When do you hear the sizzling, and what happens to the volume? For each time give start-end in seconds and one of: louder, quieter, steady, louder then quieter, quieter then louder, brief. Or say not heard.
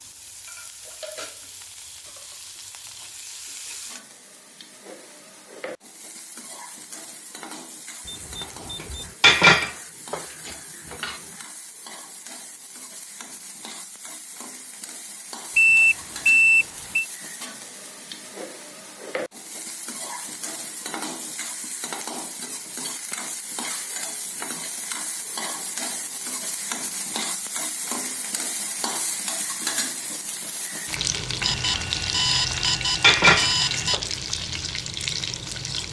0.0-35.8 louder.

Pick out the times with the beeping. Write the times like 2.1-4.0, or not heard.
8.1-9.2, 15.6-17.1, 31.4-34.0.